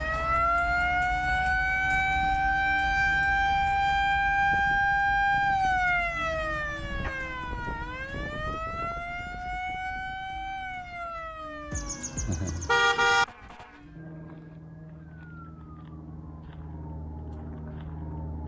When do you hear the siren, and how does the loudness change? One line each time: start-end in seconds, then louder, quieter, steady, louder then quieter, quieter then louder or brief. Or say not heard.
0.0-18.4 quieter.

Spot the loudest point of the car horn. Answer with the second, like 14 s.
13 s.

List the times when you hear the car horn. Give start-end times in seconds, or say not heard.
11.7-13.2.